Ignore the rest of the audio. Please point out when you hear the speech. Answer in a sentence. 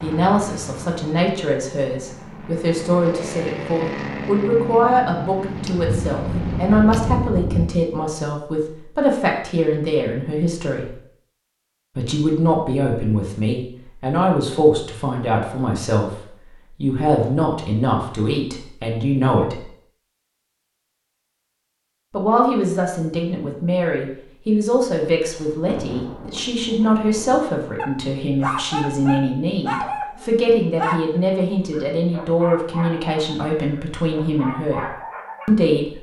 The speech can be heard from 0.0 to 10.9 s, from 11.9 to 16.1 s, from 16.8 to 19.6 s and from 22.1 to 35.9 s.